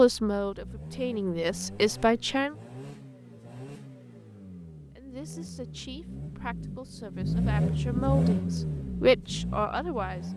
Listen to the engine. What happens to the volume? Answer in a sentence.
The volume of the engine goes up.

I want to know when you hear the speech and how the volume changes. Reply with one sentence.
You can hear the speech briefly from 0.0 to 2.5 s; and from 5.0 to 10.3 s, getting louder.